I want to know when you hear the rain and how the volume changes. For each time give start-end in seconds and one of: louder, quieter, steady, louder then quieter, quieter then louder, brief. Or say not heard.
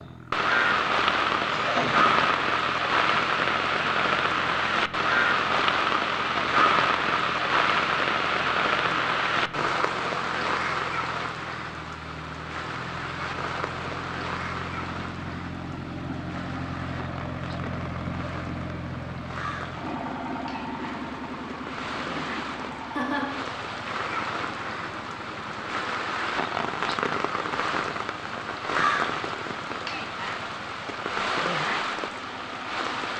0.0-33.1 quieter then louder.